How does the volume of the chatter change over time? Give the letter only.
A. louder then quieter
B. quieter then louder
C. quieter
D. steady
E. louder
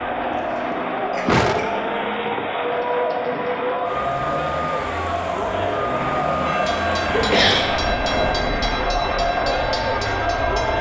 D.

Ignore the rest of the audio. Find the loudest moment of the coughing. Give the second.
7 s.